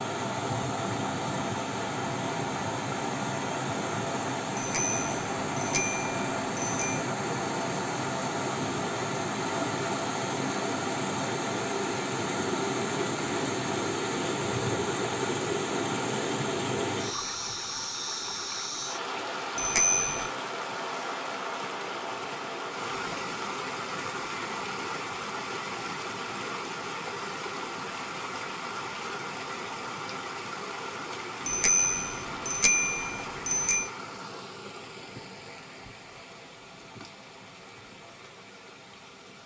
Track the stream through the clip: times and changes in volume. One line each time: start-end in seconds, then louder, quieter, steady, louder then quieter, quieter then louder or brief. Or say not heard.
0.0-39.4 quieter.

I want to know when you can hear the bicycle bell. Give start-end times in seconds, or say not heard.
4.5-7.0, 19.6-20.3, 31.4-33.9.